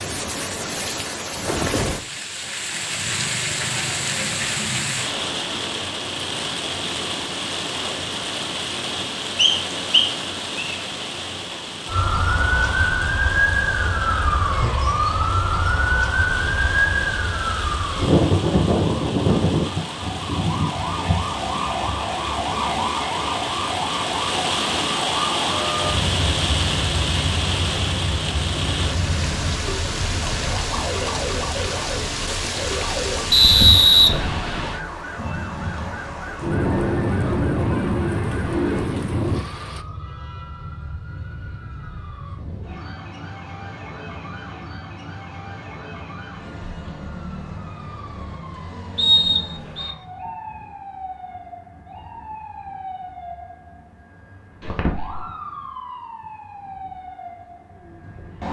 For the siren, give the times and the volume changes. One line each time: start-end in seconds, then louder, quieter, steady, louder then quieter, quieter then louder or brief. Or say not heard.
11.8-58.4 quieter.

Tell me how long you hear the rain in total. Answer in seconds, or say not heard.
40 s.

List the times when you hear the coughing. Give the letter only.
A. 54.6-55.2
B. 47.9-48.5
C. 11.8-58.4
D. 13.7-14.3
A.